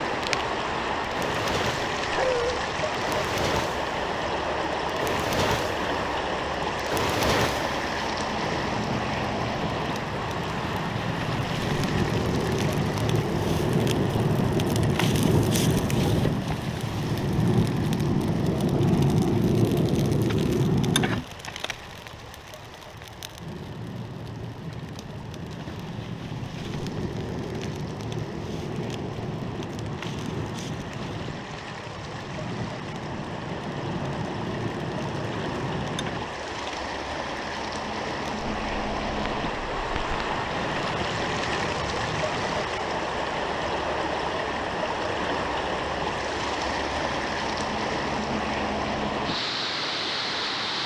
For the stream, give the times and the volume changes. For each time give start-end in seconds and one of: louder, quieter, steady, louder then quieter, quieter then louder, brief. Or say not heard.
0.0-50.8 quieter then louder.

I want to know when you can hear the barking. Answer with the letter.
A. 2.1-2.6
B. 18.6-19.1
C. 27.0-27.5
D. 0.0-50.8
A.